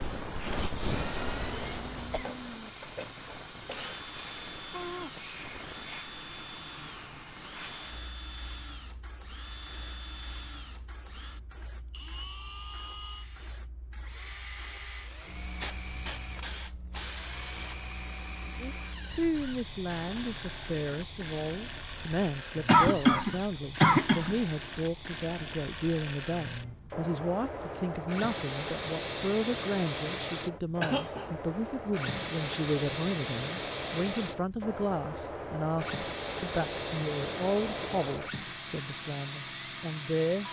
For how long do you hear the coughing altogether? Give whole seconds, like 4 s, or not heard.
3 s.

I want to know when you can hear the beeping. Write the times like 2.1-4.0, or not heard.
not heard.